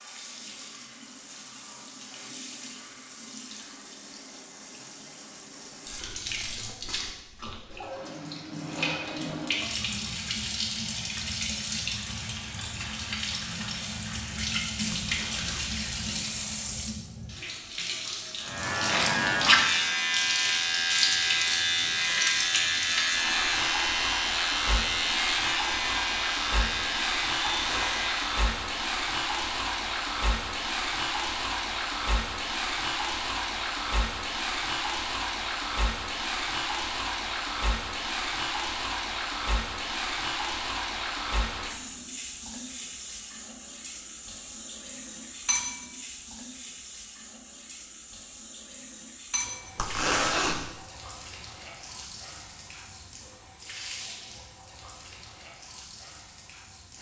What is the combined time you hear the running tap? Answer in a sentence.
The running tap can be heard for 57 seconds in total.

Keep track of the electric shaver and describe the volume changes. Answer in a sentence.
The volume of the electric shaver goes down.